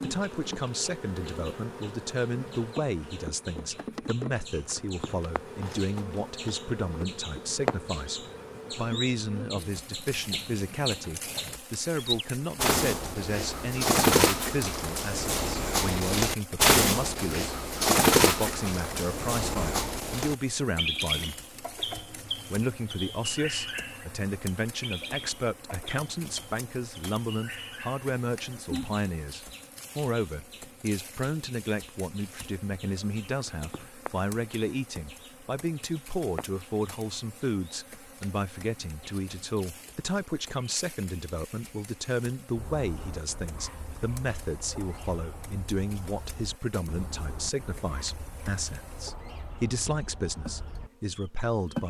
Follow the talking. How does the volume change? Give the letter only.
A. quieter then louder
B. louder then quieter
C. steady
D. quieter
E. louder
C.